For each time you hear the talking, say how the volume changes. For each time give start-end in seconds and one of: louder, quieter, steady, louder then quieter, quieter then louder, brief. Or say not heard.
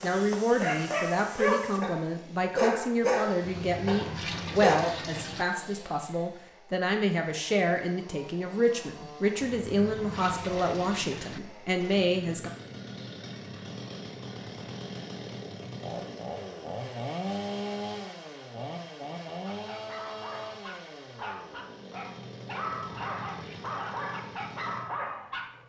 0.0-12.5 steady.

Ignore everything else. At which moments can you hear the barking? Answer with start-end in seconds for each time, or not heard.
0.0-5.0, 19.4-25.4.